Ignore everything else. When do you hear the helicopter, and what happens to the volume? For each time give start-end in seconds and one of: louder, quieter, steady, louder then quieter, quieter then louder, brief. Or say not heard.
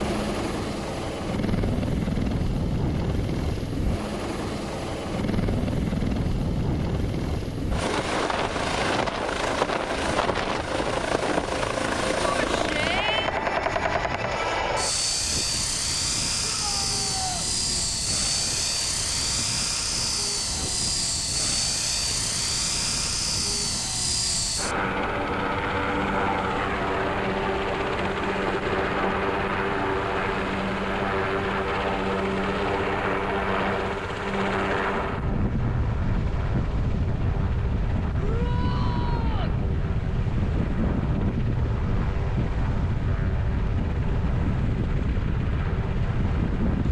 0.0-46.8 quieter.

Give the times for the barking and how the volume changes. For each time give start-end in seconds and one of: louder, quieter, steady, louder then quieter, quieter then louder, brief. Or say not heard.
not heard.